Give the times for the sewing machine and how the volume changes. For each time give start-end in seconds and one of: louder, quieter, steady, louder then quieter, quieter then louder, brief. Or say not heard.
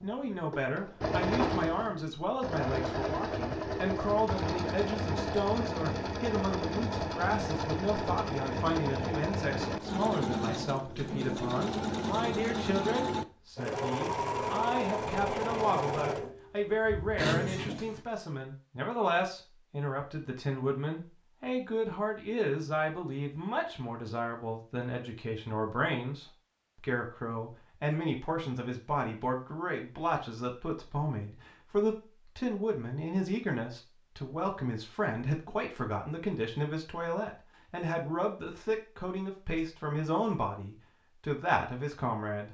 0.0-18.0 steady.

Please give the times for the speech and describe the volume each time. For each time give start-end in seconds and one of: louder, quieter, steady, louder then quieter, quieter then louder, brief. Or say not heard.
0.0-42.4 steady.